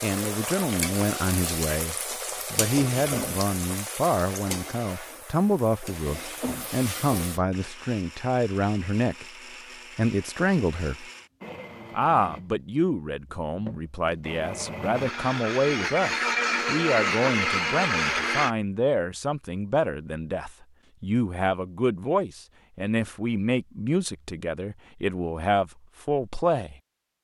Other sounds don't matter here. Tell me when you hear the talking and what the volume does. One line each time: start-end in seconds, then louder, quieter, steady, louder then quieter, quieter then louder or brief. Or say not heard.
0.0-9.2 steady
9.9-11.1 brief
11.9-26.8 steady.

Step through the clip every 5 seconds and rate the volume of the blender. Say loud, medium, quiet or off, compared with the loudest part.
off, quiet, quiet, loud, off, off.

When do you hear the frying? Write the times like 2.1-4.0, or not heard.
0.0-7.4.